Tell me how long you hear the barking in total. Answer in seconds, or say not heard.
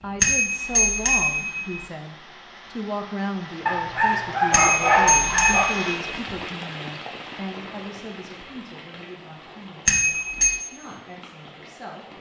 2 s.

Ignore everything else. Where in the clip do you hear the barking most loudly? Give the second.
5 s.